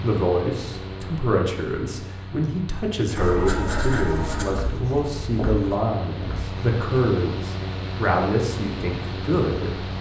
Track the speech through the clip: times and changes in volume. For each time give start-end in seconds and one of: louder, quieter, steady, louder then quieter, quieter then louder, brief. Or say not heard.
0.0-9.8 steady.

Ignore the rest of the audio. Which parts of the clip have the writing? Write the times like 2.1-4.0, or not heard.
3.1-6.5.